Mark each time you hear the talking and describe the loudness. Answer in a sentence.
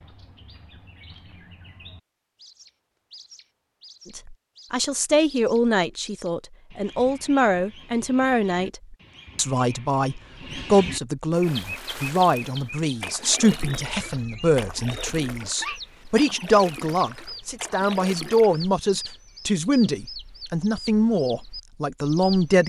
You can hear the talking from 4.2 to 22.6 s, at a steady volume.